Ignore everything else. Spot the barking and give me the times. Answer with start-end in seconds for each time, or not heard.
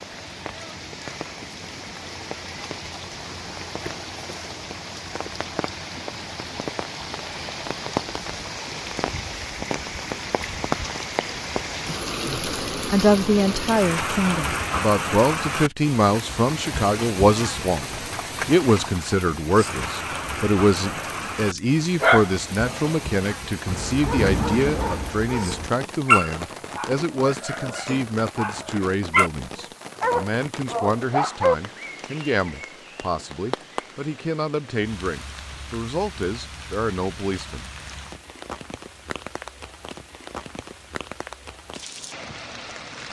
20.8-29.3, 30.0-31.6.